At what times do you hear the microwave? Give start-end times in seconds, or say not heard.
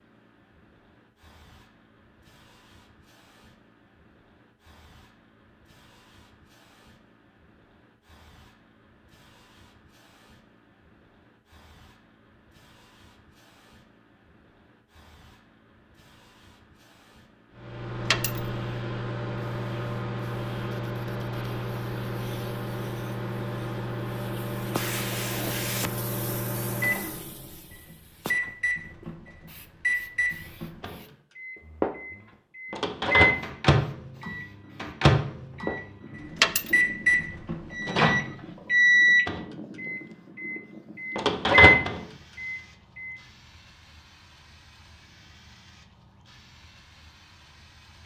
17.6-43.1.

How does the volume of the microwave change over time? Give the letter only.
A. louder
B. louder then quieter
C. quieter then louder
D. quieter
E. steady
A.